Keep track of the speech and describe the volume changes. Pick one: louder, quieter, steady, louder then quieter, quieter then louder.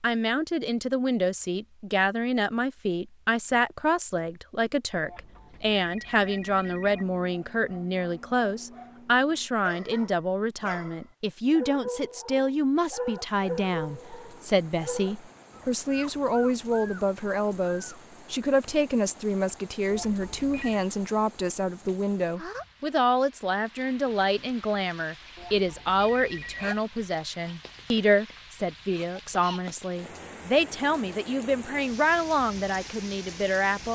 steady.